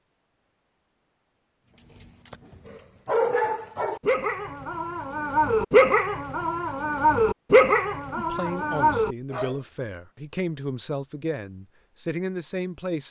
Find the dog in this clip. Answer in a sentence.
You can hear the dog from 1.9 to 9.6 s.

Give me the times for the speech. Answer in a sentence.
The speech can be heard from 8.2 to 13.0 s.